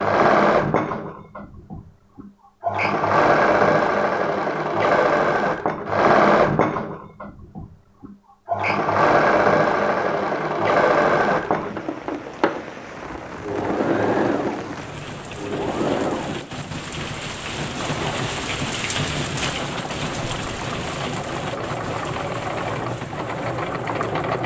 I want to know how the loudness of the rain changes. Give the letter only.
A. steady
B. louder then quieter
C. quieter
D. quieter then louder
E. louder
B.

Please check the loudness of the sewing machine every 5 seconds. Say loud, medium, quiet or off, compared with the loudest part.
loud, loud, loud, medium, medium.